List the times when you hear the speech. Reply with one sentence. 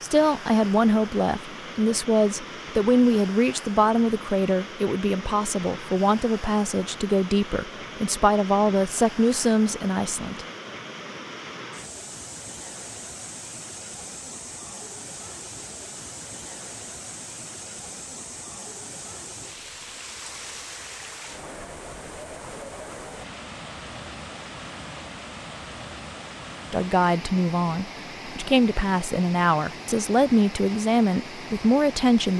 You can hear the speech from 0.0 to 10.4 s and from 26.7 to 32.3 s.